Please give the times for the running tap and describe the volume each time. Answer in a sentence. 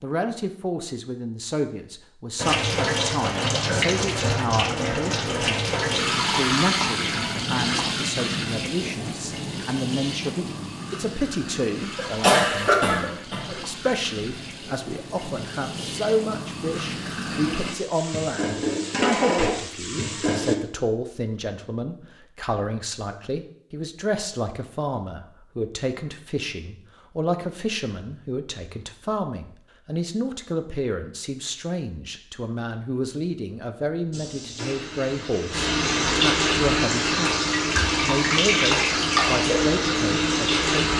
The running tap can be heard from 2.4 to 20.6 s, getting quieter then louder; and from 34.1 to 40.9 s, getting louder.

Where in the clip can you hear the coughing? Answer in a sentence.
You can hear the coughing from 11.9 to 13.6 s.